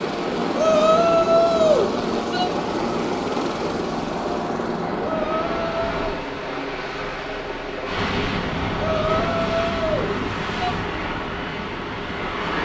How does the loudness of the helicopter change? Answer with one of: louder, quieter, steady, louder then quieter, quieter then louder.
quieter.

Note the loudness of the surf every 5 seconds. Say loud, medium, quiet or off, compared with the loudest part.
medium, loud, loud.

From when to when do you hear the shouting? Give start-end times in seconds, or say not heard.
0.6-2.5, 5.0-6.0, 8.8-10.8.